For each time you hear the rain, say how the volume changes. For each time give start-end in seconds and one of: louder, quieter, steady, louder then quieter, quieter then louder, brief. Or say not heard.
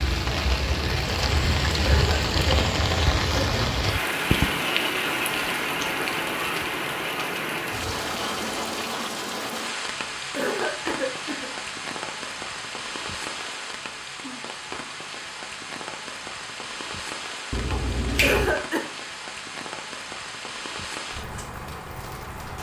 0.0-22.5 quieter.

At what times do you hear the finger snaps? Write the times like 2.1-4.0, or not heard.
17.5-18.6.